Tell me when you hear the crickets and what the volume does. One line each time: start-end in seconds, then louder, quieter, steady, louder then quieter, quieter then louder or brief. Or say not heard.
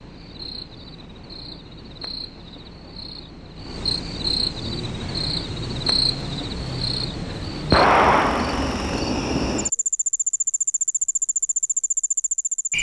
0.0-12.7 louder.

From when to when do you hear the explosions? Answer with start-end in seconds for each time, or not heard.
7.7-8.8.